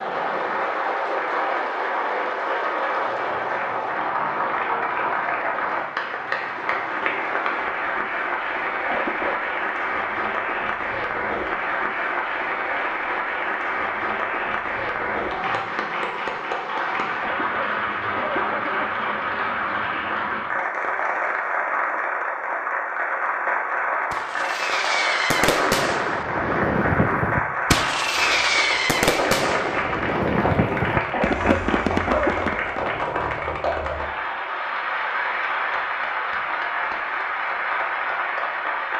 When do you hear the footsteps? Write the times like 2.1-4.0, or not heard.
not heard.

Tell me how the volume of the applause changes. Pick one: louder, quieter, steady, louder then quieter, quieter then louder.
steady.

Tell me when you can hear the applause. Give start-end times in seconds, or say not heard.
0.0-38.9.